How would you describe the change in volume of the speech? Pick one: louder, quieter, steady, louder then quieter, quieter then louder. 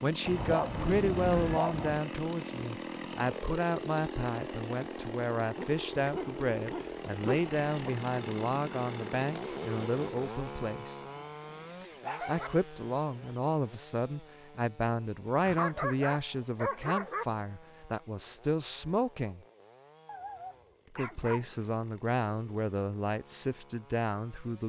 steady.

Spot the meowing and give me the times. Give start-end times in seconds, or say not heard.
not heard.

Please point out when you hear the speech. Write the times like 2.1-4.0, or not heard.
0.0-11.1, 12.2-19.4, 20.9-24.6.